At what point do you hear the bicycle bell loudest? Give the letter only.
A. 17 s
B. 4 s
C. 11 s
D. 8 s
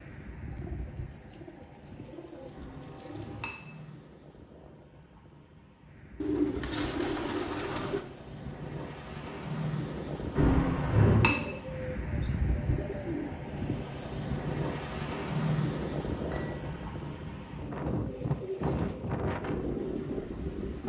C.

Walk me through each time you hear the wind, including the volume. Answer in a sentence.
You can hear the wind from 0.0 to 20.8 s, getting louder.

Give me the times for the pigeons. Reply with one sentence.
The pigeons can be heard from 0.5 to 3.5 s, from 6.2 to 8.1 s, from 11.2 to 13.3 s and from 17.6 to 19.1 s.